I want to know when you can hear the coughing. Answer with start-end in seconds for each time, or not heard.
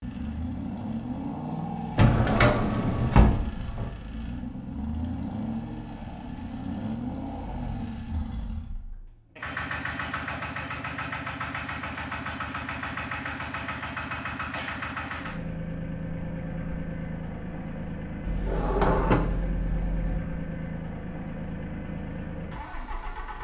not heard.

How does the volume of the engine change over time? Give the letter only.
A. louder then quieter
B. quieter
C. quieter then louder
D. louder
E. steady
E.